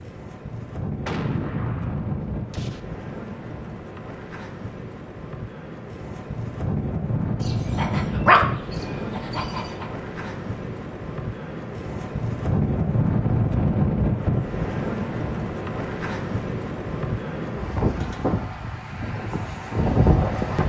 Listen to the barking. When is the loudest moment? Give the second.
8 s.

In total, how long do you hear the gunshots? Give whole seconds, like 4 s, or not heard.
2 s.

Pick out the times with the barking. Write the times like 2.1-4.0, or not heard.
7.4-9.8.